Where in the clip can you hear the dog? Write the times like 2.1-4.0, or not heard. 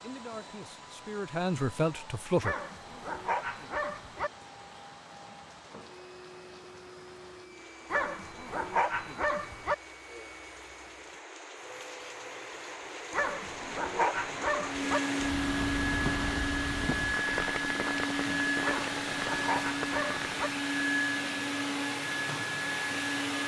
2.4-4.3, 7.9-9.8, 13.1-15.0, 18.6-20.5.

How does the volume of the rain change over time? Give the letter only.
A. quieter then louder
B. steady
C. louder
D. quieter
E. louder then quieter
C.